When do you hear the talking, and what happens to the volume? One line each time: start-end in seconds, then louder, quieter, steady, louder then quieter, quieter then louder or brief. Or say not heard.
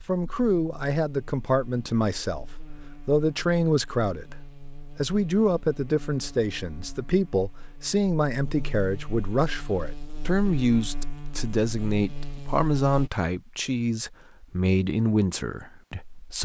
0.1-2.5 brief
3.0-4.3 brief
5.0-16.4 steady.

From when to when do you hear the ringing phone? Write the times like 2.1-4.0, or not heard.
not heard.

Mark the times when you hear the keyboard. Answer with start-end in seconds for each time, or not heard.
not heard.